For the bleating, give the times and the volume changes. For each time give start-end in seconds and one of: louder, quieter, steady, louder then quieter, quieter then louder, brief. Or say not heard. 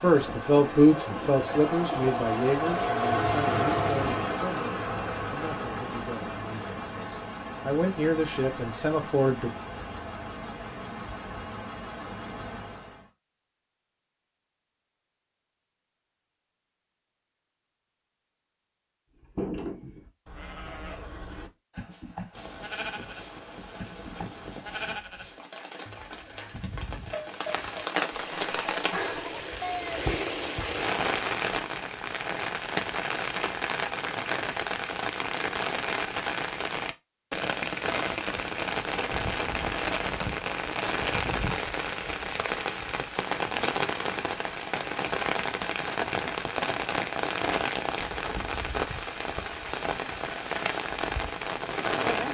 19.2-30.1 steady.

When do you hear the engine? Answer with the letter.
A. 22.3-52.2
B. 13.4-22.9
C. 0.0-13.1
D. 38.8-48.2
C.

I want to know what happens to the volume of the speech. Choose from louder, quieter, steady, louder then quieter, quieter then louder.
quieter then louder.